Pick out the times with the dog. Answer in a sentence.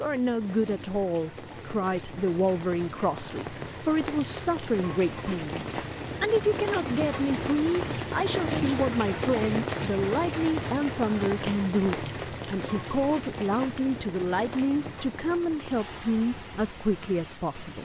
You can't hear the dog here.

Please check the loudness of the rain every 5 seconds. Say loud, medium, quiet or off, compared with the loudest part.
medium, loud, loud, medium.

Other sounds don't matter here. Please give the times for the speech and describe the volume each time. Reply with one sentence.
You can hear the speech from 0.0 to 17.7 s, at a steady volume.